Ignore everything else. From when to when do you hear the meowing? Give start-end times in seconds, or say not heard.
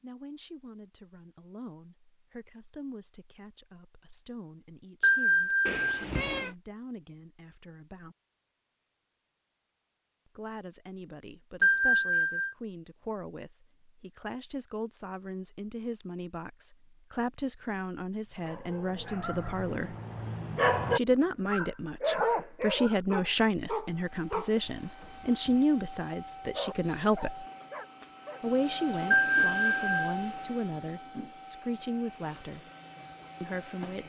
5.7-6.5.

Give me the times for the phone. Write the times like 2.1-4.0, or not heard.
5.0-6.0, 11.6-12.6, 29.1-30.1.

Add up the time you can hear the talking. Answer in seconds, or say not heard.
29 s.